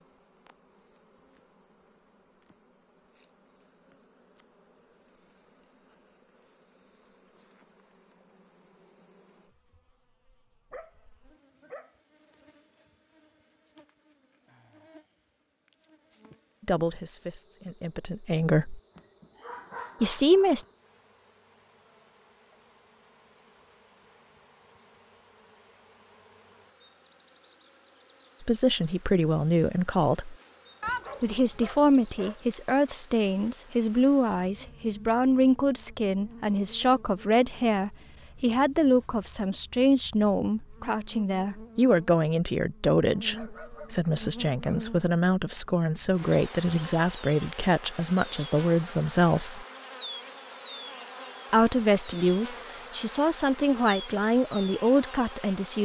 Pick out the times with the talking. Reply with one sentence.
You can hear the talking from 16.6 to 18.8 s, from 20.0 to 20.6 s, from 28.4 to 30.4 s, from 31.2 to 49.6 s and from 51.5 to 55.7 s.